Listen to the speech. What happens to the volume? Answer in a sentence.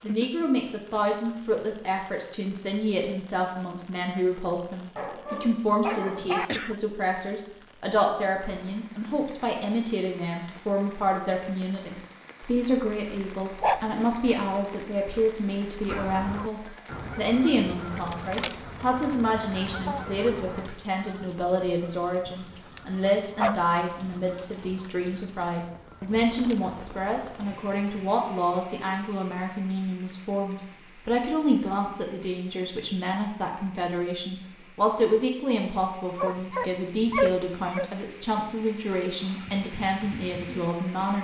The volume of the speech stays about the same.